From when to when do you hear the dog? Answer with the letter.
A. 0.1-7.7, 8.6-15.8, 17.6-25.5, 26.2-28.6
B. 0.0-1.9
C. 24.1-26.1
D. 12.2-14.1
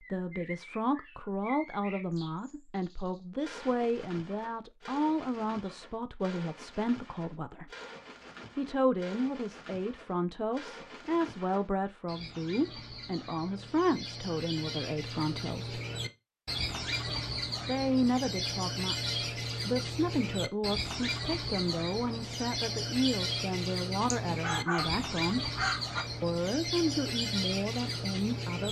C.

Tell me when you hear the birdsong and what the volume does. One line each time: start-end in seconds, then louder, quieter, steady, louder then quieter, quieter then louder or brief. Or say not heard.
0.0-28.6 louder.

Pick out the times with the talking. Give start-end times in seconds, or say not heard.
0.1-7.7, 8.6-15.8, 17.6-25.5, 26.2-28.6.